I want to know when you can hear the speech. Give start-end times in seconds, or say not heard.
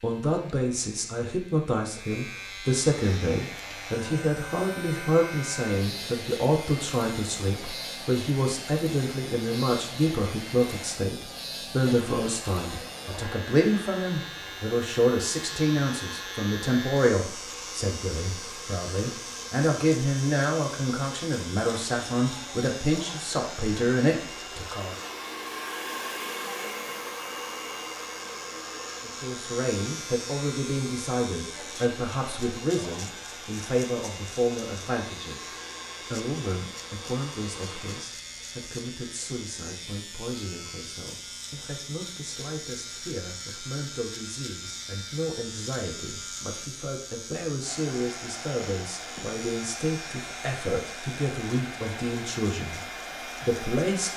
0.0-24.9, 29.1-35.5, 36.1-54.1.